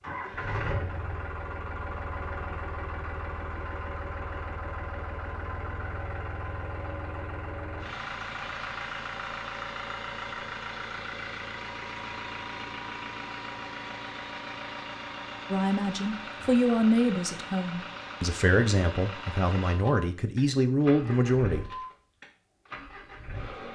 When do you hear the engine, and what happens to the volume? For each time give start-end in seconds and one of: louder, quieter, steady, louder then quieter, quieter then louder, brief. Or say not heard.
0.0-23.7 steady.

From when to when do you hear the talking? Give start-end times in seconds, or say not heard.
15.5-21.8.